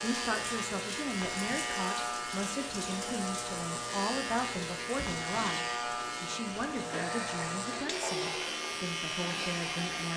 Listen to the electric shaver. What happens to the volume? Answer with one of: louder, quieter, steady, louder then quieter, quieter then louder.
steady.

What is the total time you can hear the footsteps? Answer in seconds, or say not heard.
not heard.